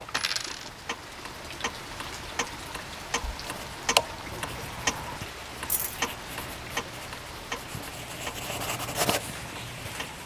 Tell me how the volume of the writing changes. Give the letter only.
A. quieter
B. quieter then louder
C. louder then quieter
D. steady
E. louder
E.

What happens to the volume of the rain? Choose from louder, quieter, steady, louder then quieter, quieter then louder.
steady.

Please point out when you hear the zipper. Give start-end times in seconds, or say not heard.
not heard.